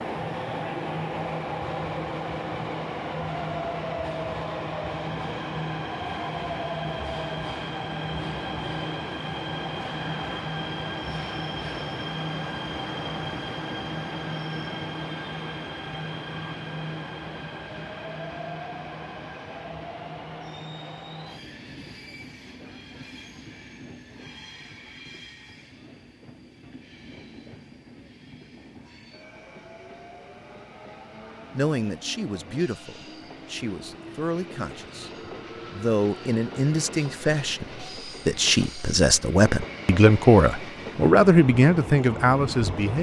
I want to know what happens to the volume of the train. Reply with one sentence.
The loudness of the train goes down, then up.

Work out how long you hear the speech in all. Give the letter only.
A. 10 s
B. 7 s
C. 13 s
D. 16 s
A.